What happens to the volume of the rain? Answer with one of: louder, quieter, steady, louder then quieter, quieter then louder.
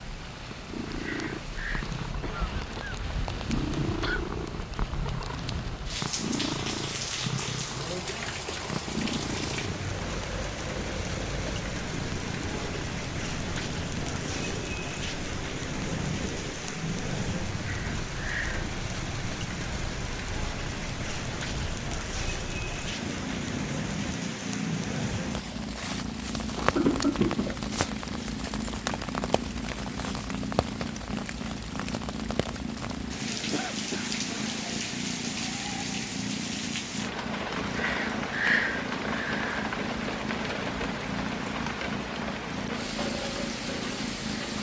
steady.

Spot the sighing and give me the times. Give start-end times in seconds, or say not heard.
0.9-1.9, 17.7-18.7, 37.6-39.7.